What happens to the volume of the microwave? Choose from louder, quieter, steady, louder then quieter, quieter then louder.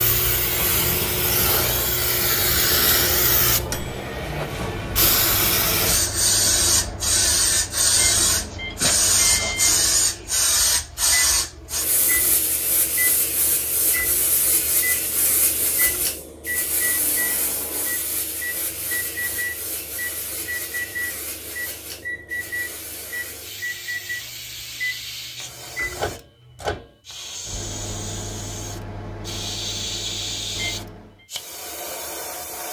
steady.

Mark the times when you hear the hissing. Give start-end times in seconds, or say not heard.
0.0-32.6.